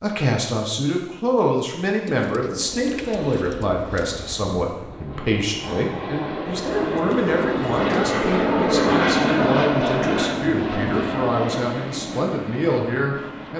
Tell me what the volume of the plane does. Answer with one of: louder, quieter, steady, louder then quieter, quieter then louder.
louder then quieter.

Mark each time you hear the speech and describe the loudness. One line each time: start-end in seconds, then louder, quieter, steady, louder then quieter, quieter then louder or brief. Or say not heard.
0.0-13.5 steady.